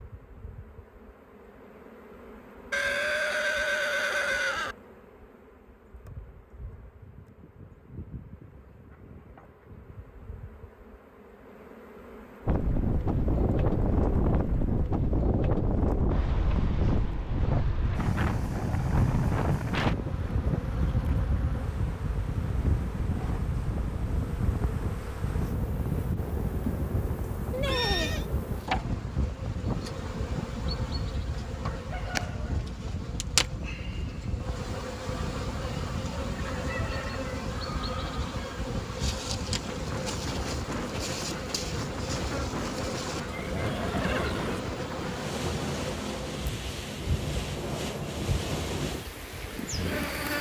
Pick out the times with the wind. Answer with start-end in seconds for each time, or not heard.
12.4-50.3.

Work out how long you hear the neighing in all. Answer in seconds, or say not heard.
4 s.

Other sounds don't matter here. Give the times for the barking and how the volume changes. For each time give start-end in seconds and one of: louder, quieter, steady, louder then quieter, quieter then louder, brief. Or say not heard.
not heard.